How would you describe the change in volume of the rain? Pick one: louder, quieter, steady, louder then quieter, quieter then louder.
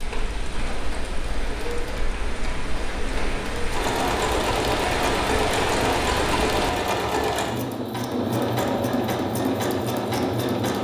louder.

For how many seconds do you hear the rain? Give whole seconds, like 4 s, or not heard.
7 s.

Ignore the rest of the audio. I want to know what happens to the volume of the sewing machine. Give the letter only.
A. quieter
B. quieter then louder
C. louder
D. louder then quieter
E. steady
C.